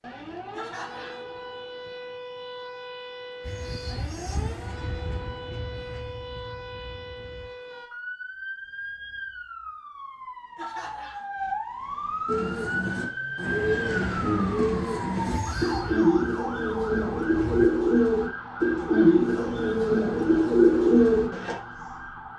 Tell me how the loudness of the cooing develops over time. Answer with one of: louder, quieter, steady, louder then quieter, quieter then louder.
louder.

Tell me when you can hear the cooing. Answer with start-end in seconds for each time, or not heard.
12.2-21.6.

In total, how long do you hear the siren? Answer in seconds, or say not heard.
22 s.